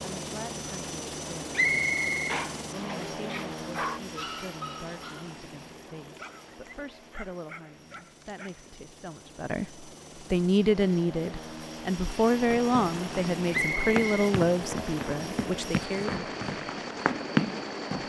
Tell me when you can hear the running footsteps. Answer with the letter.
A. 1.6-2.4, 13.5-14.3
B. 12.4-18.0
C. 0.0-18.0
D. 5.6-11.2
B.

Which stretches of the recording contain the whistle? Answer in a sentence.
The whistle can be heard from 1.6 to 2.4 s and from 13.5 to 14.3 s.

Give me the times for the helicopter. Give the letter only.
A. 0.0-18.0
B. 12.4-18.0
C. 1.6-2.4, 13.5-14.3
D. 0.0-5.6
A.